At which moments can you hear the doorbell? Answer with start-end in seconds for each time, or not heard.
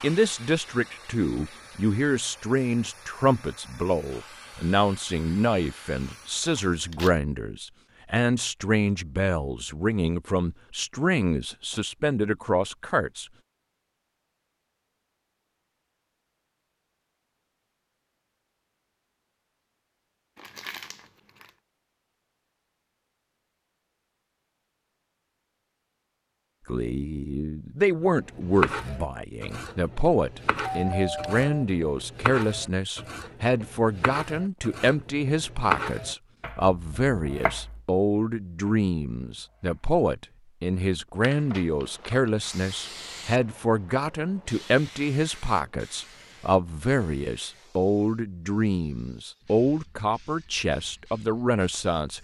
30.6-31.6.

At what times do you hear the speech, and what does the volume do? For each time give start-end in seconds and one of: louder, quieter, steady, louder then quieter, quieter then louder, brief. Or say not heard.
0.0-13.2 steady
26.6-52.1 steady.